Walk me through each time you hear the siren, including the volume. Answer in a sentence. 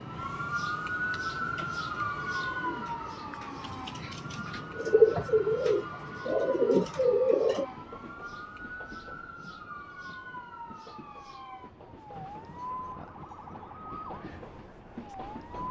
The siren can be heard from 0.0 to 15.6 s, getting quieter.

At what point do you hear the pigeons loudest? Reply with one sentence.
The loudest moment of the pigeons is at 5 seconds.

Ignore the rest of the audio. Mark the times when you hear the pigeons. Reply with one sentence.
You can hear the pigeons from 1.1 to 7.7 s.